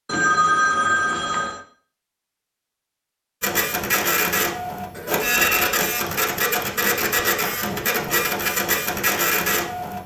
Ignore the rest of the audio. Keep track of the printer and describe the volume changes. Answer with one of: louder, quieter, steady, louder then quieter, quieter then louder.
steady.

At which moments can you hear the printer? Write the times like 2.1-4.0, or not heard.
3.4-10.0.